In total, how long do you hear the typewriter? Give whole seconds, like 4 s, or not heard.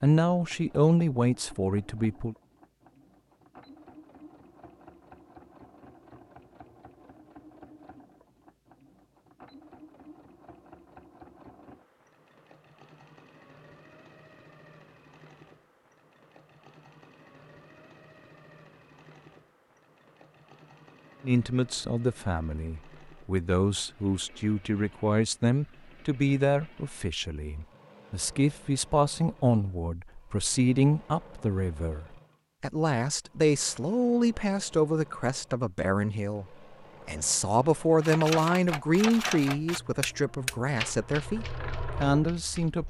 5 s.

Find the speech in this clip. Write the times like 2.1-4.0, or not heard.
0.0-2.4, 21.2-36.5, 37.0-42.8.